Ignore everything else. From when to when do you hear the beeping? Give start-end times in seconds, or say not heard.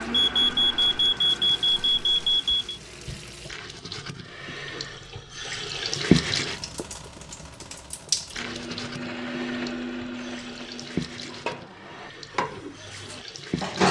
0.1-2.6.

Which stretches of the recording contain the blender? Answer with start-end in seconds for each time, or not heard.
0.0-2.7, 8.3-12.1.